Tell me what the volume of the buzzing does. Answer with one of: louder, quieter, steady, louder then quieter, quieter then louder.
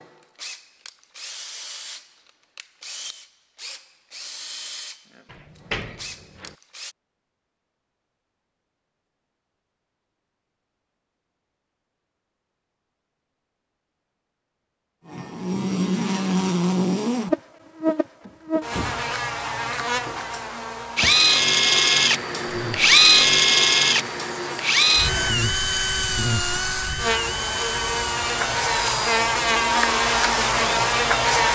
quieter then louder.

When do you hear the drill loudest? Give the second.
23 s.